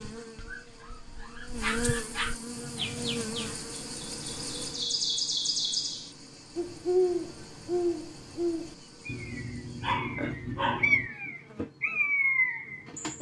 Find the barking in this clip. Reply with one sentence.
The barking can be heard from 0.3 to 2.4 s and from 9.1 to 11.1 s.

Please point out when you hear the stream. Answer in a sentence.
The stream can't be heard in this clip.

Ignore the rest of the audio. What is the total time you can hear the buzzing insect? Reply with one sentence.
You can hear the buzzing insect for 13 seconds altogether.